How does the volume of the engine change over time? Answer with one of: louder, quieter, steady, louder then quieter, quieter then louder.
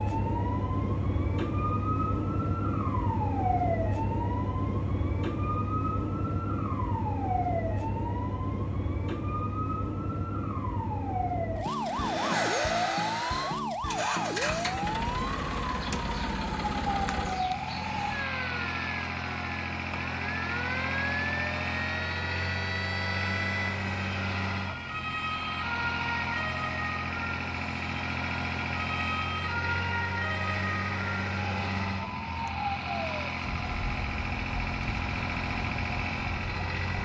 steady.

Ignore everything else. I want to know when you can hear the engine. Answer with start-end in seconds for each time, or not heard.
11.7-37.0.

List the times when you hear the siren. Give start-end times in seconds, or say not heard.
0.0-37.0.